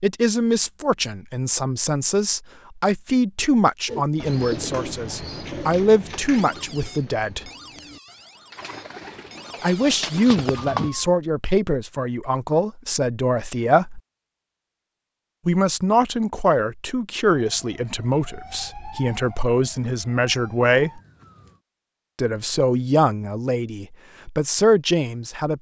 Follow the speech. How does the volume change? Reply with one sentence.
The volume of the speech stays about the same.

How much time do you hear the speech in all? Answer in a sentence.
The speech can be heard for 21 seconds in total.